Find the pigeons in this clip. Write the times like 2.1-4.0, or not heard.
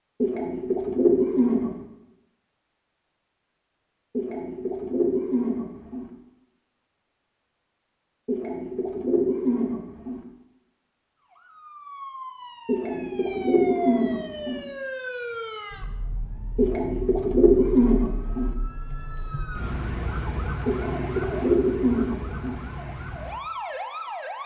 0.2-1.8, 4.2-6.1, 8.2-10.2, 12.7-14.7, 16.6-18.6, 20.6-22.6.